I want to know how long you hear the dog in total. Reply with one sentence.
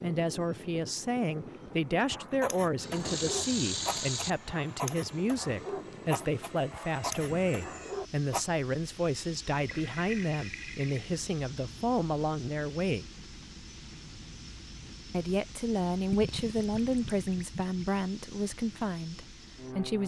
You can hear the dog for 6 seconds altogether.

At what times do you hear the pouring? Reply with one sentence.
The pouring can be heard from 2.6 to 4.3 s, from 9.7 to 11.1 s and from 16.1 to 18.1 s.